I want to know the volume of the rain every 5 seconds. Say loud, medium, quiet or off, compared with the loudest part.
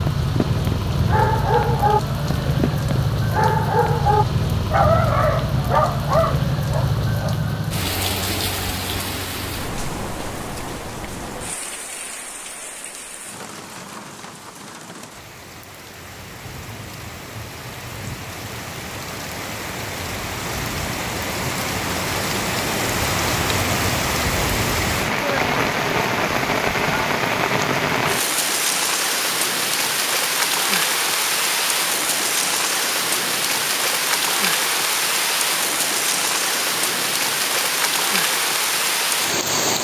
loud, loud, quiet, quiet, loud, loud, loud, loud.